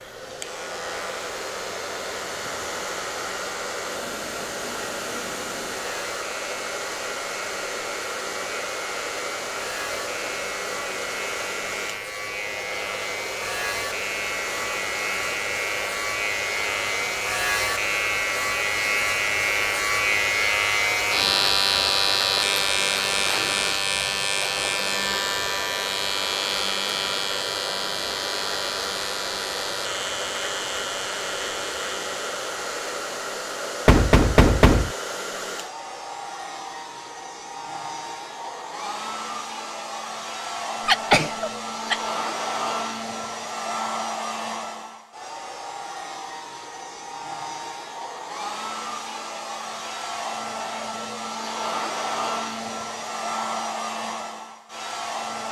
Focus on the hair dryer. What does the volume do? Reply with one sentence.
The volume of the hair dryer stays about the same.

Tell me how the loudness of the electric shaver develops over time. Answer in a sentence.
The volume of the electric shaver goes up, then down.